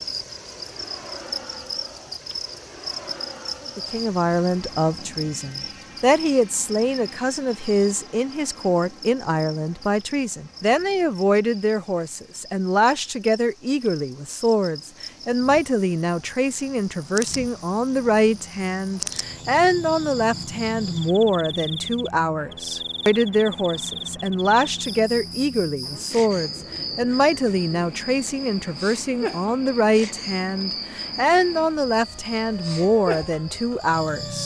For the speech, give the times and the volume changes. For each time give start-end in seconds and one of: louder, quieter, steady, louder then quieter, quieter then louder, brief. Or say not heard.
3.8-34.4 steady.